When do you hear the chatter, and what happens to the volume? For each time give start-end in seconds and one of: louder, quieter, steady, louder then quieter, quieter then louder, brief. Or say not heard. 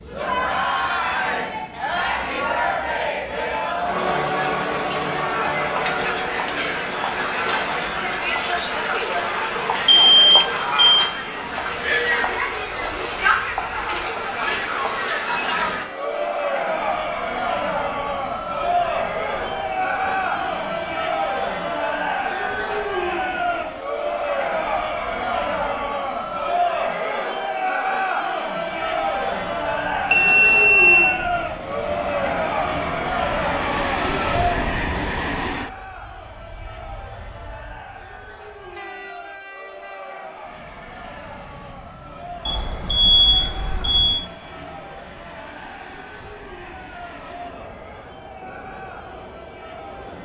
0.0-50.2 quieter.